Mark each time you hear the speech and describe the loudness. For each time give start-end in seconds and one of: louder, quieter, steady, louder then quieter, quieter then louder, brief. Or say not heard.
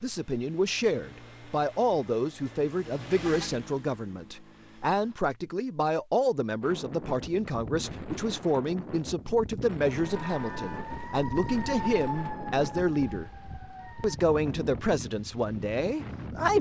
0.0-13.3 steady
14.0-16.5 brief.